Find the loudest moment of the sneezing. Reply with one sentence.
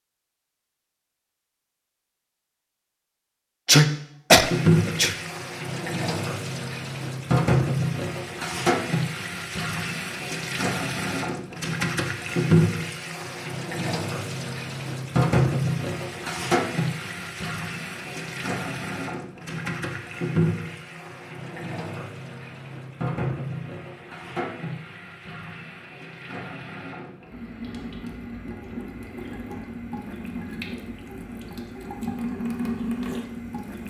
The loudest moment of the sneezing is at 4 seconds.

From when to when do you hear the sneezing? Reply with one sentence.
You can hear the sneezing from 3.6 to 5.2 s.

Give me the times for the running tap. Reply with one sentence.
The running tap can be heard from 4.4 to 33.8 s.